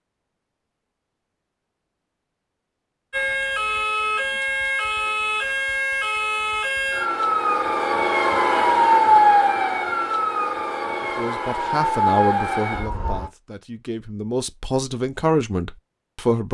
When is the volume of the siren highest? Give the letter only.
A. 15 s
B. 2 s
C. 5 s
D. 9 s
D.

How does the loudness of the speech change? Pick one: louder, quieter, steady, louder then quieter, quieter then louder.
quieter then louder.